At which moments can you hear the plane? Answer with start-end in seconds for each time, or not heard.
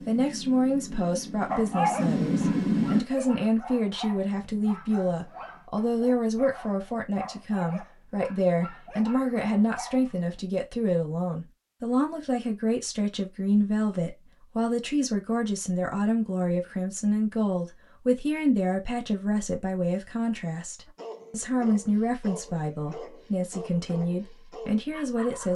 0.0-3.0.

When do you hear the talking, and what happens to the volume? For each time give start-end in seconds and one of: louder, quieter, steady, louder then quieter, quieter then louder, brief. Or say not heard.
0.1-25.5 steady.